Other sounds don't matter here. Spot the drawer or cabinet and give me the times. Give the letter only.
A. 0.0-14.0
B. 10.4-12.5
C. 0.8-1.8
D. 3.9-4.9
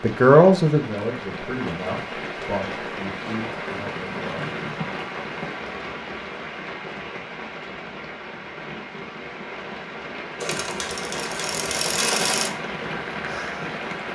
D.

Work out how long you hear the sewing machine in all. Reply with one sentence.
You can hear the sewing machine for 2 seconds altogether.